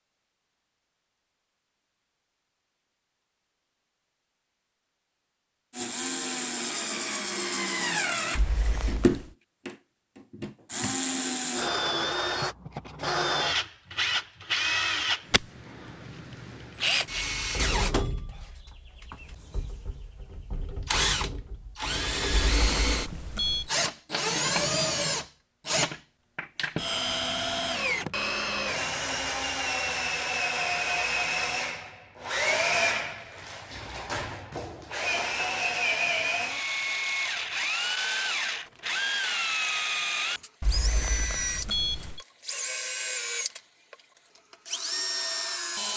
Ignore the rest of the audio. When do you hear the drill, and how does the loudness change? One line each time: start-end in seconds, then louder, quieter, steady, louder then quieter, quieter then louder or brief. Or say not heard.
5.7-45.9 steady.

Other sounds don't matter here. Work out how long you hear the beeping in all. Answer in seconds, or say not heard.
4 s.